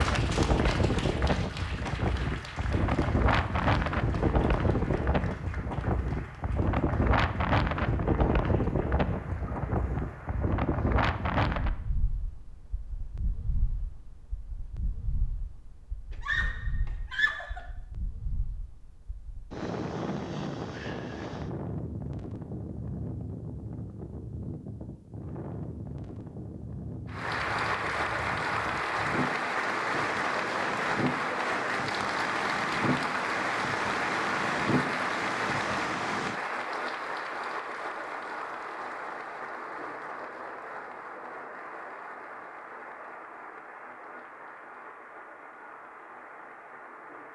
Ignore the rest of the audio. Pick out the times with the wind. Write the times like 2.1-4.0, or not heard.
0.0-36.4.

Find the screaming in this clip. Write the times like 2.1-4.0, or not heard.
16.2-17.6.